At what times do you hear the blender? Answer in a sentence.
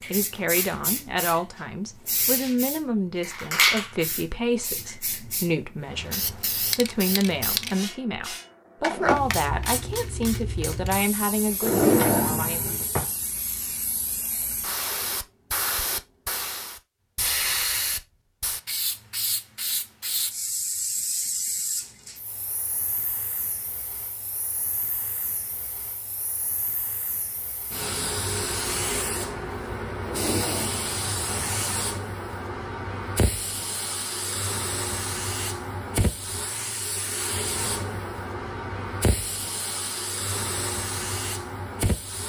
You can't hear the blender here.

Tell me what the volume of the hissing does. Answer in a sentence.
The loudness of the hissing stays about the same.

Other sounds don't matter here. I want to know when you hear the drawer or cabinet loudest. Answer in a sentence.
The volume of the drawer or cabinet peaks at 12 seconds.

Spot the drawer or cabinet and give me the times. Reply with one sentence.
The drawer or cabinet can be heard from 11.6 to 13.1 s and from 30.0 to 31.5 s.